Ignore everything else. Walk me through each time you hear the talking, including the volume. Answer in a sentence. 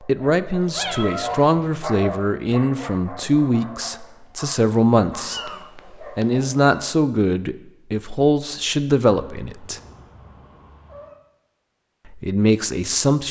You can hear the talking from 0.0 to 9.8 s, at a steady volume; and briefly from 12.1 to 13.2 s.